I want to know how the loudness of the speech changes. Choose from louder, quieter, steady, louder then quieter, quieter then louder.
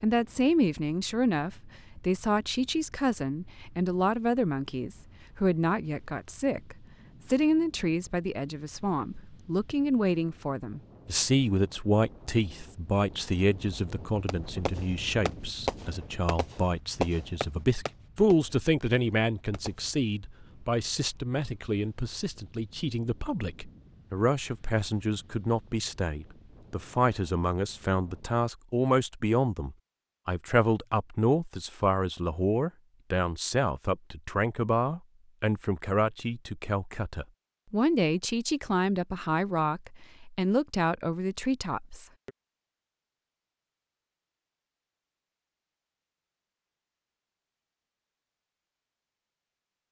steady.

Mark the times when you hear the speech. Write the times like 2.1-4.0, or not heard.
0.0-42.3.